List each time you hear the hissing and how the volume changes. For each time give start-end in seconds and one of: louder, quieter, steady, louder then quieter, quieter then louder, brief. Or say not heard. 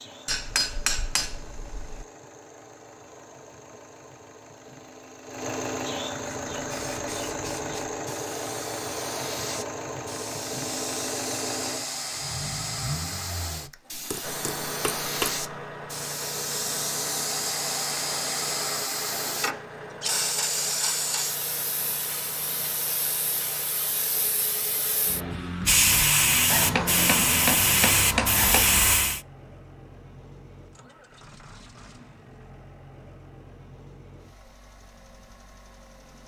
6.3-29.2 louder.